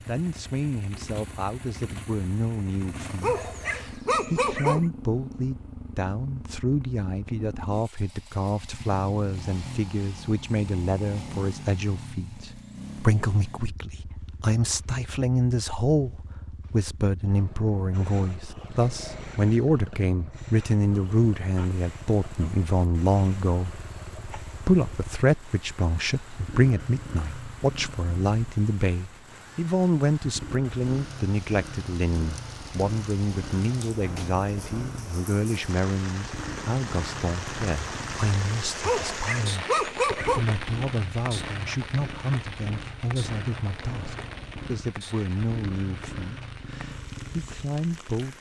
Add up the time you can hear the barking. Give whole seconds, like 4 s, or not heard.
3 s.